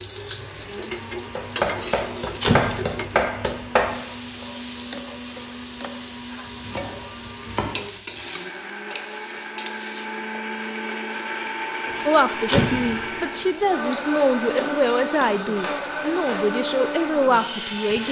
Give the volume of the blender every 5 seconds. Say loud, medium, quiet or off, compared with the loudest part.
medium, medium, loud, loud.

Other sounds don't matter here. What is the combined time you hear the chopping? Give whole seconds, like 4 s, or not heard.
6 s.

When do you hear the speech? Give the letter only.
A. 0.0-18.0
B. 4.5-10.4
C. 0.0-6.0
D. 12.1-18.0
D.